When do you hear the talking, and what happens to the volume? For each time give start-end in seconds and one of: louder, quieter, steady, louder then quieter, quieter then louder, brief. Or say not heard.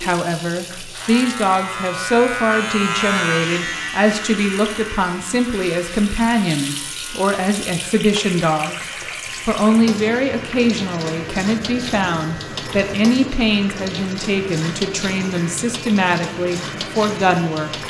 0.0-17.8 steady.